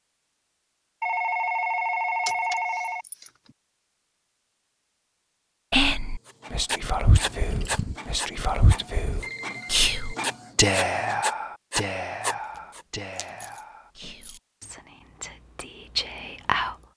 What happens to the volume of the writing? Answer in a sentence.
The volume of the writing goes down, then up.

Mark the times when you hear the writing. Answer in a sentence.
The writing can be heard from 6.2 to 12.8 s.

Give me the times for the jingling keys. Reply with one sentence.
The jingling keys can be heard from 2.2 to 3.5 s, from 7.1 to 8.0 s and from 13.2 to 14.4 s.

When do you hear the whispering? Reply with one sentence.
You can hear the whispering from 5.7 to 16.8 s.